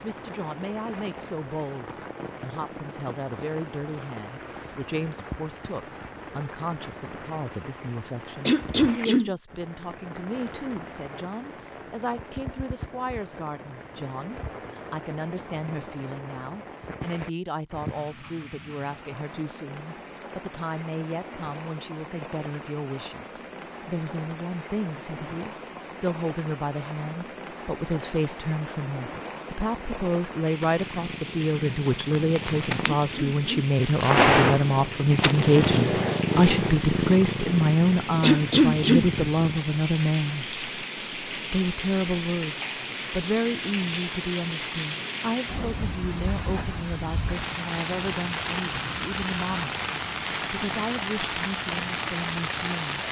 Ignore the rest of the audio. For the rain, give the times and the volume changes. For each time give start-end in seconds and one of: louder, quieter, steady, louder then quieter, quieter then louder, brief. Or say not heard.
0.0-53.0 louder.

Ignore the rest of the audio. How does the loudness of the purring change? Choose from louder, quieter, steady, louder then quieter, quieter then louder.
louder then quieter.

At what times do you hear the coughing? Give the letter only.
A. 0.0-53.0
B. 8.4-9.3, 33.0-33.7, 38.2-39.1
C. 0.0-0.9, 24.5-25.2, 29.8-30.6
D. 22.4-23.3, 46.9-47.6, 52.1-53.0
B.